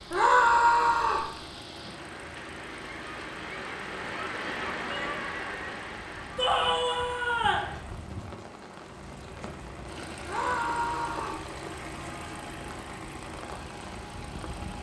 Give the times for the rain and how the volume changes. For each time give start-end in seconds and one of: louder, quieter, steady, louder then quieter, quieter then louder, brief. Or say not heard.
0.0-14.7 louder then quieter.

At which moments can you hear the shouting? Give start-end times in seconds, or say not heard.
0.1-1.3, 6.3-7.7, 10.2-11.4.